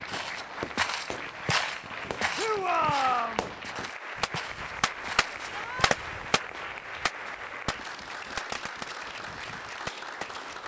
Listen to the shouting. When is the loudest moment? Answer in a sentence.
The volume of the shouting peaks at 3 seconds.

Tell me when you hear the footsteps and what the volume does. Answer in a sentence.
You can hear the footsteps from 0.1 to 6.1 s, getting quieter.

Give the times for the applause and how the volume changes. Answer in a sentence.
The applause can be heard from 0.0 to 10.6 s, at a steady volume.